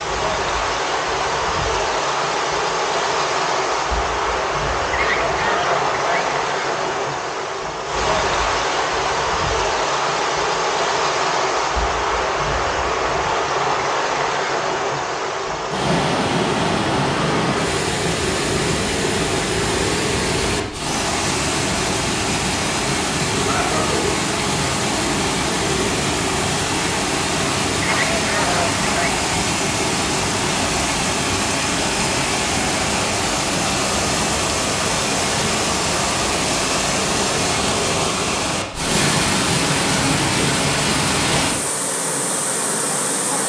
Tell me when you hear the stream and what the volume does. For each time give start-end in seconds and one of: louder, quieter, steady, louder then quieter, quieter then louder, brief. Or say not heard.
0.0-43.4 steady.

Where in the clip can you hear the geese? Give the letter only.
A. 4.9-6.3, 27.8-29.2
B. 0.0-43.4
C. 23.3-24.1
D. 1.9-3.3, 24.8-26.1
A.